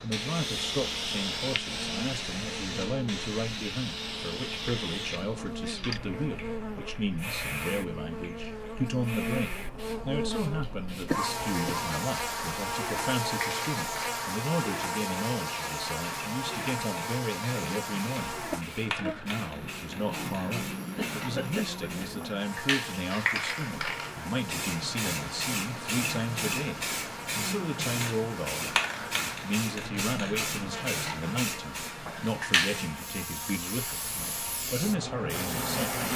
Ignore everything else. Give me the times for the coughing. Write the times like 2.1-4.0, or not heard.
11.1-11.8, 20.9-22.1.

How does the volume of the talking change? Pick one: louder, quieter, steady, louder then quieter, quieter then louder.
steady.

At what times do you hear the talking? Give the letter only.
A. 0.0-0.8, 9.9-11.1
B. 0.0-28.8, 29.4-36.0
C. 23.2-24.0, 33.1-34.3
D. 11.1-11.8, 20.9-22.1
B.